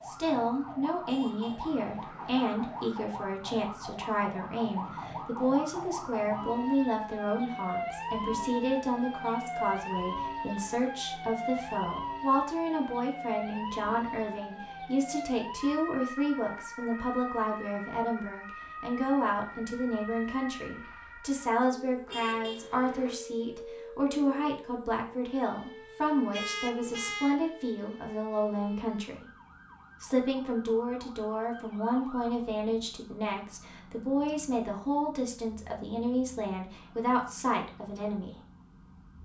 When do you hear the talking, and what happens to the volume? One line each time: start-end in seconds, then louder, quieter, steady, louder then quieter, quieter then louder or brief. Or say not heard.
0.1-29.2 steady
30.0-38.4 steady.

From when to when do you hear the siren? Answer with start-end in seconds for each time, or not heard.
0.0-39.2.